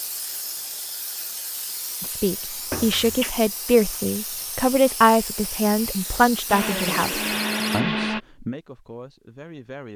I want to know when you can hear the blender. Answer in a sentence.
You can hear the blender from 6.5 to 8.2 s.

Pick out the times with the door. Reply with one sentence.
The door can be heard from 2.7 to 3.4 s and from 6.8 to 7.8 s.